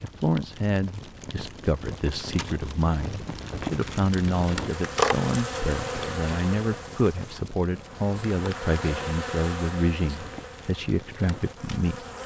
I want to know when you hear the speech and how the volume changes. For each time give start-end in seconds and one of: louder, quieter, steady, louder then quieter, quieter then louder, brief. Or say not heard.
0.0-12.1 steady.